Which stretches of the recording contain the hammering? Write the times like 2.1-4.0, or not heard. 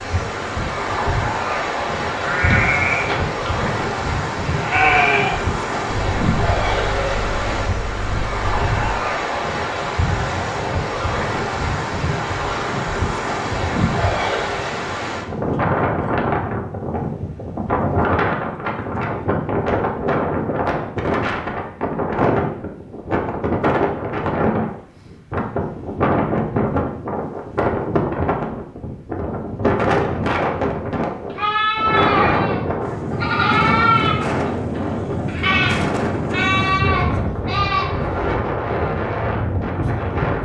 not heard.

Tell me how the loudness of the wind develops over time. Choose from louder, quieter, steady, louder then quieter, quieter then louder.
steady.